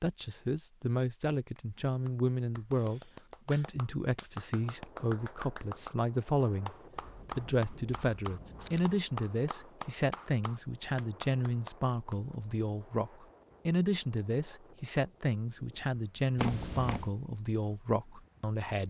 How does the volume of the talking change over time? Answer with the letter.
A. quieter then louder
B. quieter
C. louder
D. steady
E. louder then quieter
D.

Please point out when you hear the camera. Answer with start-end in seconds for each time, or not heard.
2.9-3.8, 7.0-8.9, 16.4-17.1.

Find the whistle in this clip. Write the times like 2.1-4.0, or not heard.
not heard.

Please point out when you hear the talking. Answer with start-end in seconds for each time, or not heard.
0.0-6.8, 7.3-18.8.